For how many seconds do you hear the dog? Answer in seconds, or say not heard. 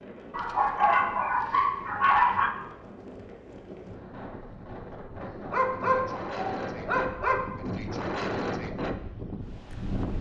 4 s.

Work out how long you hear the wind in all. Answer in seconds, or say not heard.
10 s.